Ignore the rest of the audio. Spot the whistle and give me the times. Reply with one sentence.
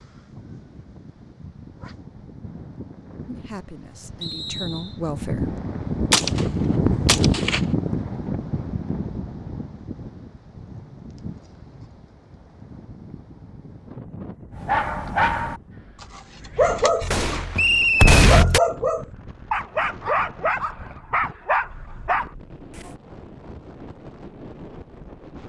The whistle can be heard from 4.2 to 5.0 s and from 17.6 to 18.2 s.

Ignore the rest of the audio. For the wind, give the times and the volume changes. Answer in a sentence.
You can hear the wind from 0.0 to 25.4 s, getting louder then quieter.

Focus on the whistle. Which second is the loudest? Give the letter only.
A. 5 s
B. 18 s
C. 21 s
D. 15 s
B.